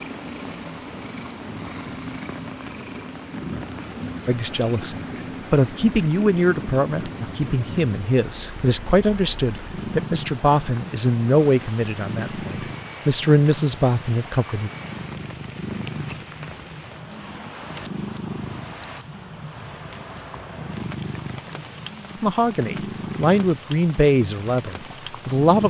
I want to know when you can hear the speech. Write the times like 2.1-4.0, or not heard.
4.2-14.7, 22.2-25.6.